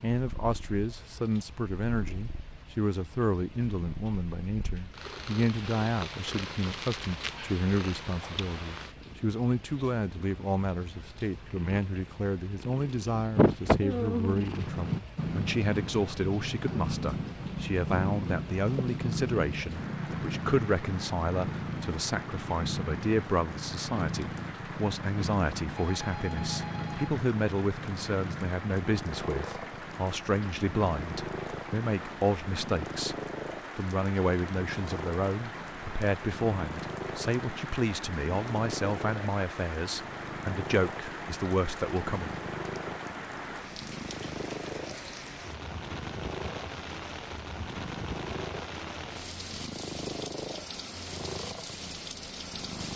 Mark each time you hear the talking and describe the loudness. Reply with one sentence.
You can hear the talking from 0.0 to 33.1 s, at a steady volume; and from 33.8 to 42.3 s, at a steady volume.